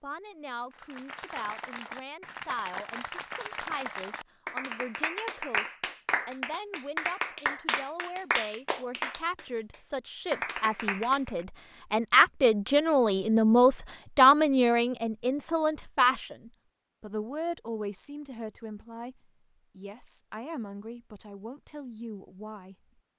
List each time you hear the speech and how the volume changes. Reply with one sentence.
You can hear the speech from 0.0 to 22.8 s, getting louder then quieter.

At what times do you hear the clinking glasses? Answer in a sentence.
The clinking glasses can't be heard in this clip.